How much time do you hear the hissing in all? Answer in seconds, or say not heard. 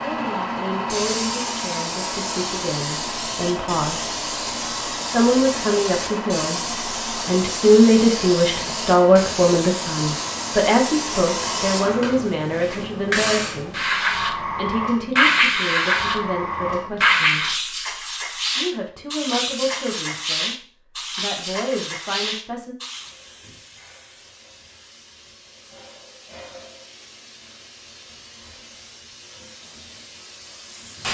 31 s.